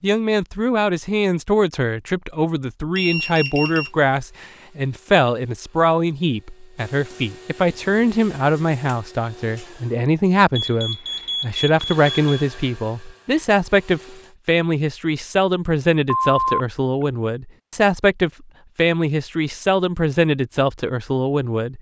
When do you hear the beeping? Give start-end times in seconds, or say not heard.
3.0-3.9, 10.6-12.4, 16.1-17.1.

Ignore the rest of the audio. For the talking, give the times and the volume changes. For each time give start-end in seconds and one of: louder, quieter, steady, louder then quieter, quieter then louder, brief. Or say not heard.
0.0-21.7 steady.